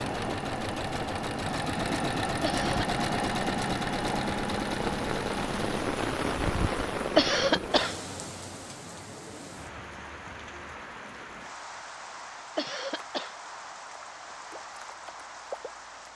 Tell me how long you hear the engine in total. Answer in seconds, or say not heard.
6 s.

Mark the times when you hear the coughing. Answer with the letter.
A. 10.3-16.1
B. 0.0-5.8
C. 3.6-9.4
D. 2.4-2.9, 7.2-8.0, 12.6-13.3
D.